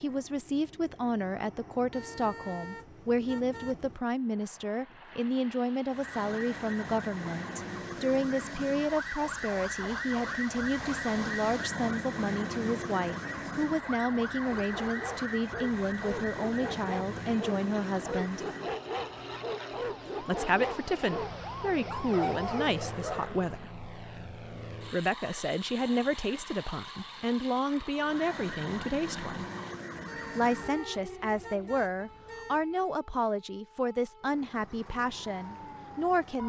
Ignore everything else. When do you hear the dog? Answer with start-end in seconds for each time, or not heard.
14.5-23.8.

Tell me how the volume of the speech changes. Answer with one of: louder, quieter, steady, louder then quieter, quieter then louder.
steady.